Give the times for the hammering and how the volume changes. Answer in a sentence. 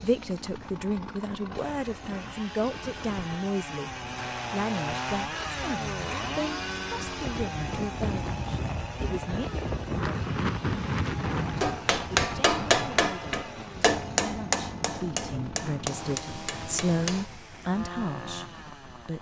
You can hear the hammering from 11.6 to 17.3 s, getting quieter.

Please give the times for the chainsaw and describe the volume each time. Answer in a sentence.
You can hear the chainsaw from 0.0 to 19.1 s, getting louder then quieter.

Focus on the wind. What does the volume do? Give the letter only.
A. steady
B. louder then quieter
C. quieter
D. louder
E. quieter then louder
B.